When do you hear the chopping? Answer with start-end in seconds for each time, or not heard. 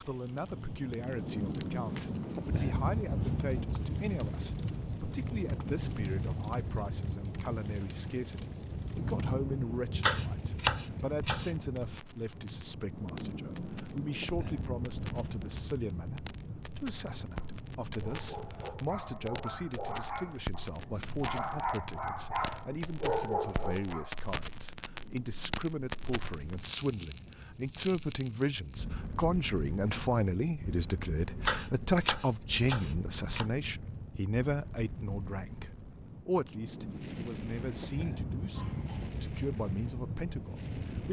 9.9-11.5, 31.3-33.5.